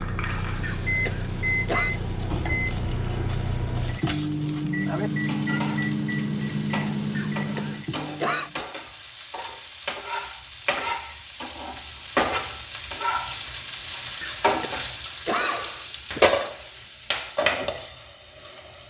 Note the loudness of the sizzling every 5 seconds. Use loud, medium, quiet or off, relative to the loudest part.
medium, medium, loud, loud.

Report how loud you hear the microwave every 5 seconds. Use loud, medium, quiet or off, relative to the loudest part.
loud, loud, off, off.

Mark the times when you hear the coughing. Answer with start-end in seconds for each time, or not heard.
0.6-1.9, 7.2-8.5, 14.2-16.2.